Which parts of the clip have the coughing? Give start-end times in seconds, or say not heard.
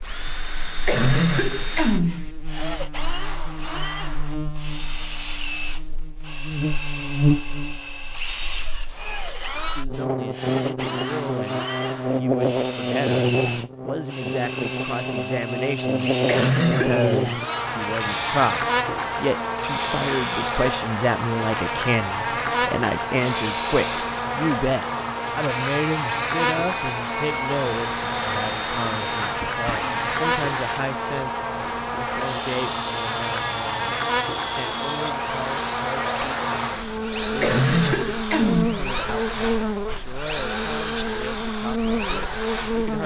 0.8-2.3, 16.2-17.0, 37.4-38.9.